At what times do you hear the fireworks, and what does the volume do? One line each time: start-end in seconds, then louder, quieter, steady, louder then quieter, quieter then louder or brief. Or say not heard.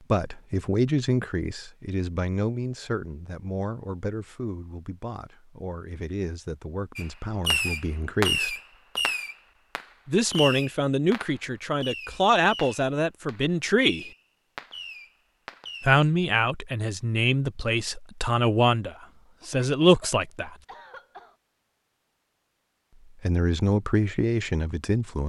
7.0-16.0 quieter.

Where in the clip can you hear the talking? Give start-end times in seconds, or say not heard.
0.1-8.6, 10.1-14.1, 15.8-20.6, 23.2-25.2.